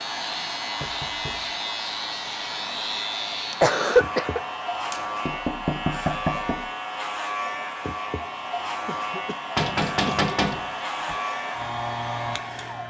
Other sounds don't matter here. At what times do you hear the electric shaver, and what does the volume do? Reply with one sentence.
You can hear the electric shaver from 0.0 to 12.8 s, at a steady volume.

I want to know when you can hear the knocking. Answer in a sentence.
You can hear the knocking from 0.8 to 1.5 s, from 4.9 to 6.7 s and from 9.6 to 11.2 s.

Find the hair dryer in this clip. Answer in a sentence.
The hair dryer can be heard from 0.0 to 12.8 s.